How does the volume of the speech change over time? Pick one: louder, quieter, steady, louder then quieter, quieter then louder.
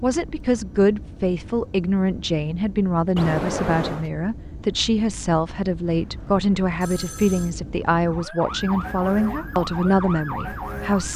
steady.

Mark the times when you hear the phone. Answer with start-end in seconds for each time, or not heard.
3.1-4.1, 5.8-7.5.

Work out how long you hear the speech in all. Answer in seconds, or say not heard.
11 s.